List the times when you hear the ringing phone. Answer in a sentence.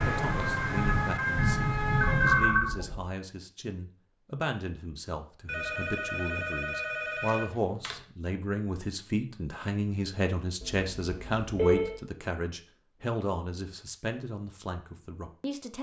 You can hear the ringing phone from 2.0 to 3.0 s, from 5.5 to 8.0 s and from 10.6 to 12.0 s.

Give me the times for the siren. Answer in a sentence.
You can hear the siren from 0.0 to 2.6 s.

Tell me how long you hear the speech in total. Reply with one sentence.
You can hear the speech for 16 seconds altogether.